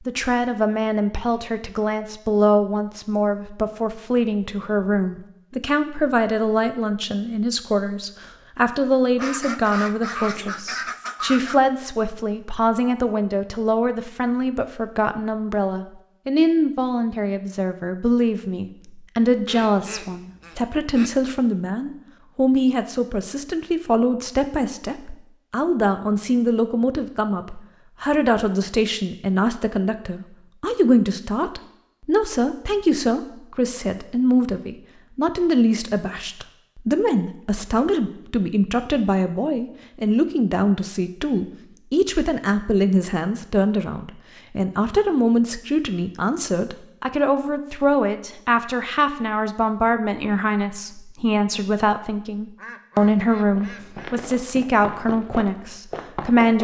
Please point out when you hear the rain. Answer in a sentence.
The rain can't be heard in this clip.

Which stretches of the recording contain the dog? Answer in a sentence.
You can't hear the dog here.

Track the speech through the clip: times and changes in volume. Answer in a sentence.
The speech can be heard from 0.1 to 56.6 s, at a steady volume.